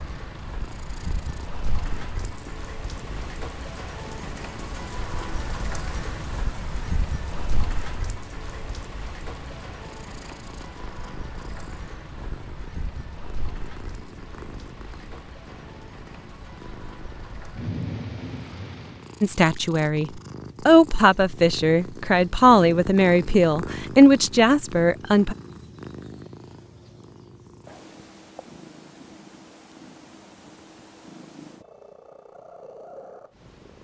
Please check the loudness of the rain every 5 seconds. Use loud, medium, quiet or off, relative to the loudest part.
loud, loud, medium, loud, off, off, off.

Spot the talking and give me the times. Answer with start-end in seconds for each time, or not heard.
19.2-25.4.